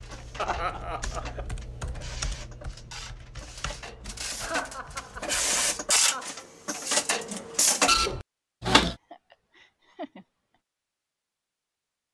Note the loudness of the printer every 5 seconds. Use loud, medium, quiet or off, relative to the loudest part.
quiet, loud, off.